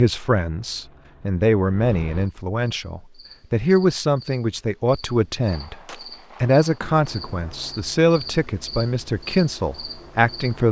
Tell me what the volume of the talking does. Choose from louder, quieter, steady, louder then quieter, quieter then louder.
steady.